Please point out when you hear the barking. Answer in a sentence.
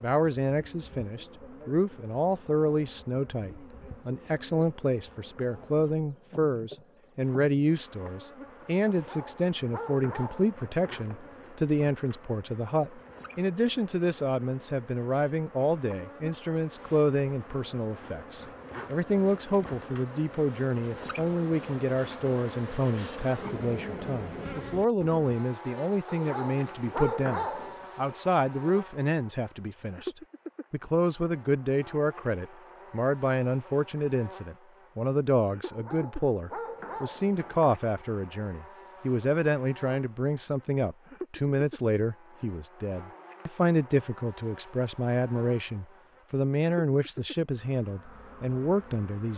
You can hear the barking from 8.8 to 11.3 s, from 26.1 to 27.9 s and from 35.6 to 37.7 s.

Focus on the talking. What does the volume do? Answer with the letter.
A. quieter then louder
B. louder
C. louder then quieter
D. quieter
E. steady
E.